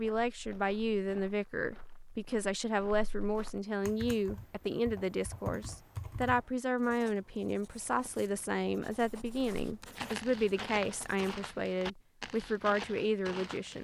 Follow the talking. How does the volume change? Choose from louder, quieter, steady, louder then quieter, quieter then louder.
steady.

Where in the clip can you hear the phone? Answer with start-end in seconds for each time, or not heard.
not heard.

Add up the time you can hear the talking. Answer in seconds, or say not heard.
14 s.